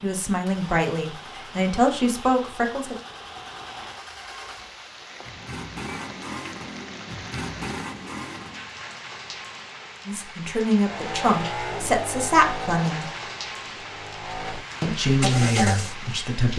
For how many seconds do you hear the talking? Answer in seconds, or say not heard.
8 s.